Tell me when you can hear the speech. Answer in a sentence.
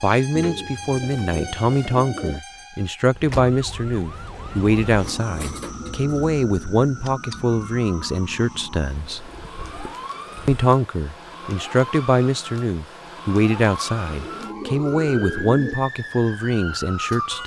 The speech can be heard from 0.0 to 9.3 s and from 10.4 to 17.4 s.